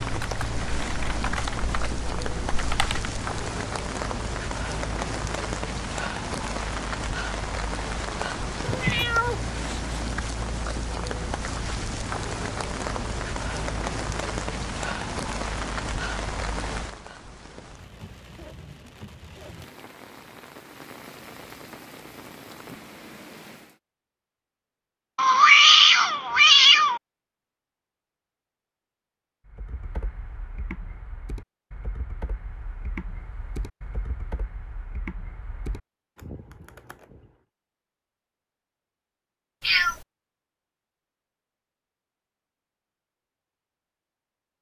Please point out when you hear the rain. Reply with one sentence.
You can hear the rain from 0.0 to 23.8 s.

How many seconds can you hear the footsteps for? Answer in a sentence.
The footsteps can't be heard in this clip.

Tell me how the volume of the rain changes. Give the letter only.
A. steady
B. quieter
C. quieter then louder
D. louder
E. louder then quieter
B.